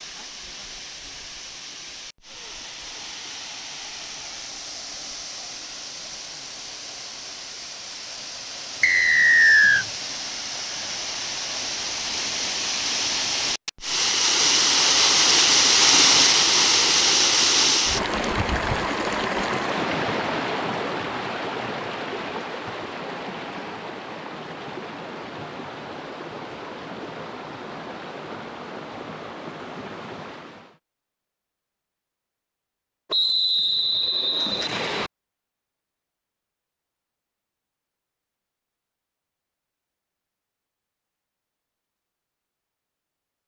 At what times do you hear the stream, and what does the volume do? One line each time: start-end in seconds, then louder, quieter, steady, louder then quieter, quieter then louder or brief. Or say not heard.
0.0-30.8 louder then quieter.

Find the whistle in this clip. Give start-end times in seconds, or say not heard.
8.8-9.8, 33.1-35.1.